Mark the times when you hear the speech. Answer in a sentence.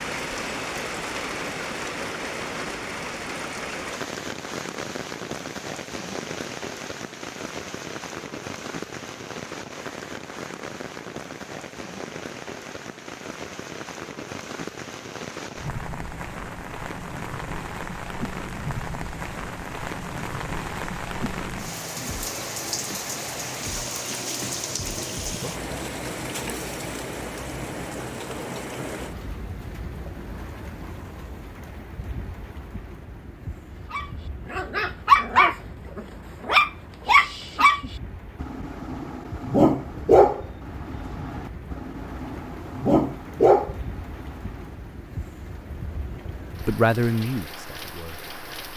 You can hear the speech from 46.6 to 48.2 s.